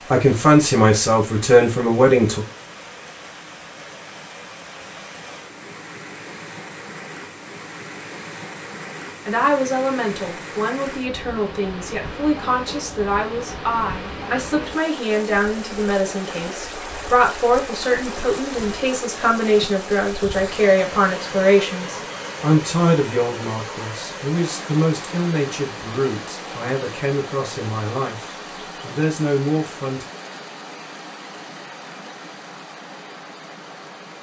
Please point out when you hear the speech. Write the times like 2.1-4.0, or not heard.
0.1-2.4, 9.2-30.1.